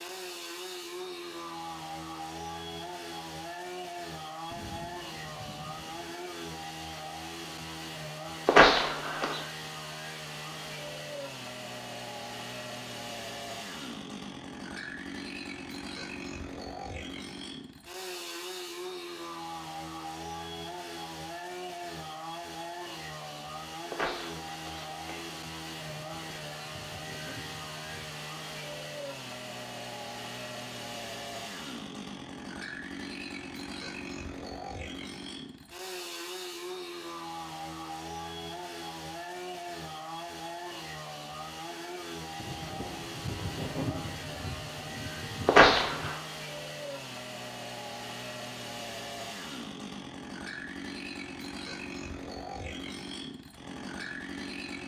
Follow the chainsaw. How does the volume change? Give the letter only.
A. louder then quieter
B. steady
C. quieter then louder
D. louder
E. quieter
B.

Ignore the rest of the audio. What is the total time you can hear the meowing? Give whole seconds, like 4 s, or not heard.
3 s.